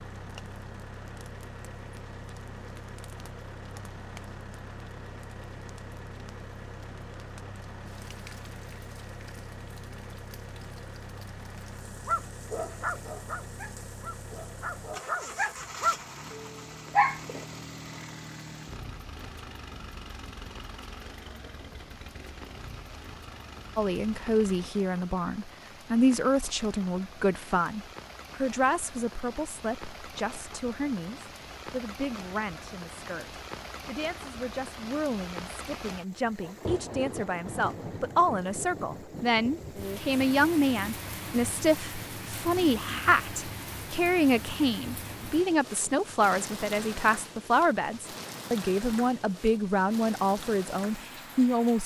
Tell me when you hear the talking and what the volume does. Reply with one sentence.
You can hear the talking from 23.8 to 51.8 s, getting quieter then louder.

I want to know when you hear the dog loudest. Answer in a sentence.
The loudest moment of the dog is at 17 seconds.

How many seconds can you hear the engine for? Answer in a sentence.
The engine can be heard for 25 seconds in total.